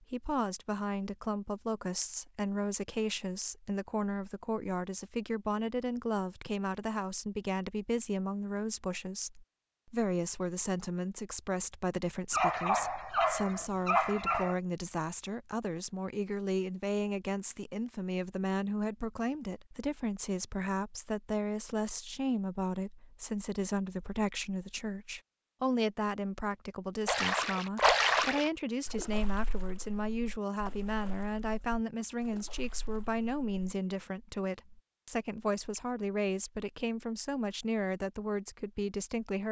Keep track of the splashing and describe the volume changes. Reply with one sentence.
The loudness of the splashing goes down.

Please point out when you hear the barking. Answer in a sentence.
The barking can be heard from 12.3 to 14.6 s.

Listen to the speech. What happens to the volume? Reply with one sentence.
The volume of the speech stays about the same.